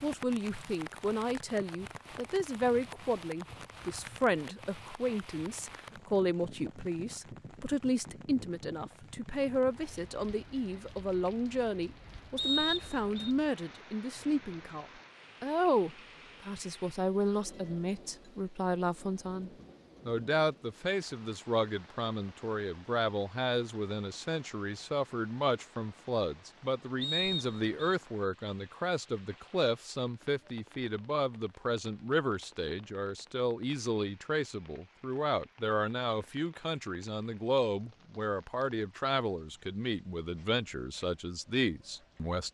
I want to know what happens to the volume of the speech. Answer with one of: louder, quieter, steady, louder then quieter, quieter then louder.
steady.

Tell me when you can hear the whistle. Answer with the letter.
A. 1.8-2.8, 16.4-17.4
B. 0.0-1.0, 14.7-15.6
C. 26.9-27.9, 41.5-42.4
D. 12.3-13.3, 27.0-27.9
D.